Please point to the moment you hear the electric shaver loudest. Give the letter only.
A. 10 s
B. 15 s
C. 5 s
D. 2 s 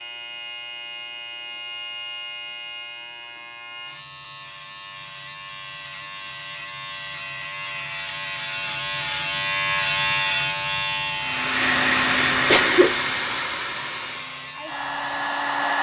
A.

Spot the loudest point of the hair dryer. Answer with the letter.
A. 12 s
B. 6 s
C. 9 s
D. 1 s
A.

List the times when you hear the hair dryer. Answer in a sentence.
The hair dryer can be heard from 11.2 to 15.7 s.